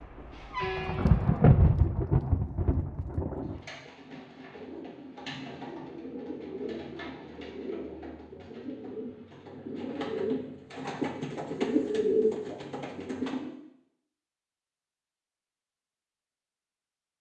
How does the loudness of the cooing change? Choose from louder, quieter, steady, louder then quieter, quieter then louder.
louder.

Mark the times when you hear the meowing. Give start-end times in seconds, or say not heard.
not heard.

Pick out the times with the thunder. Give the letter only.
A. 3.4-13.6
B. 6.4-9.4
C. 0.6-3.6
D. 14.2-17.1
C.